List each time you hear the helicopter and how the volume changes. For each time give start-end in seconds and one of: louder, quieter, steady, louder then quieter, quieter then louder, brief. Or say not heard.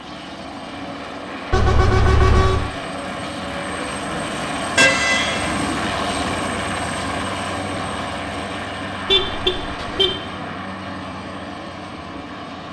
0.0-12.6 louder then quieter.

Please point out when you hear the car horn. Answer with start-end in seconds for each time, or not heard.
1.5-2.7, 4.8-5.7, 9.1-10.2.